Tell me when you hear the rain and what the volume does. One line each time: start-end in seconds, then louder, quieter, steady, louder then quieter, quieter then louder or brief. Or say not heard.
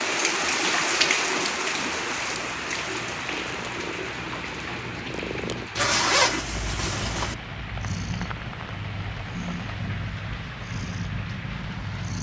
0.0-12.1 quieter.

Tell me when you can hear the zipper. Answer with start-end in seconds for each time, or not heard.
5.8-7.3.